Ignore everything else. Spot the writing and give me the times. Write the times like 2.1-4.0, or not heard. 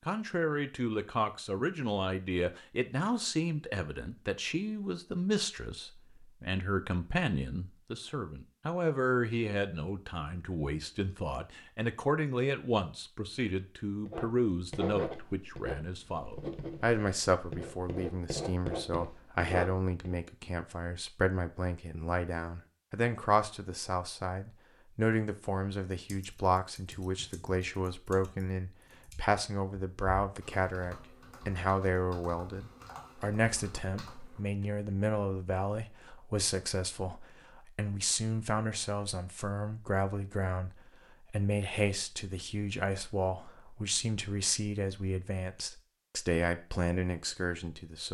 14.1-20.1.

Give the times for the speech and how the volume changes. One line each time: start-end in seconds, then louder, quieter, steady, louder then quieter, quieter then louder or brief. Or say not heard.
0.1-48.1 steady.